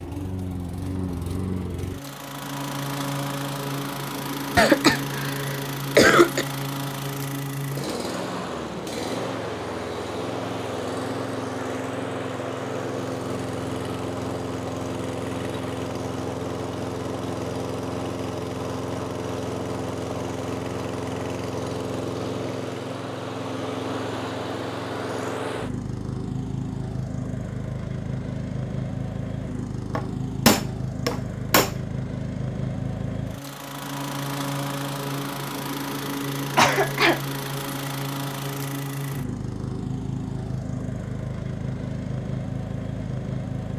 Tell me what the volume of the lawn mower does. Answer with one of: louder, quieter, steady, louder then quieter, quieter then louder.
steady.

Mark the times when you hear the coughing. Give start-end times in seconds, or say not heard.
4.5-6.5, 36.5-37.2.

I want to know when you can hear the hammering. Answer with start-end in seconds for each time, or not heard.
29.9-31.8.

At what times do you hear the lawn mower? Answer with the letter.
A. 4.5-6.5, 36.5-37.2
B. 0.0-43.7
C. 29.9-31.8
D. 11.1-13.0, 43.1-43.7
B.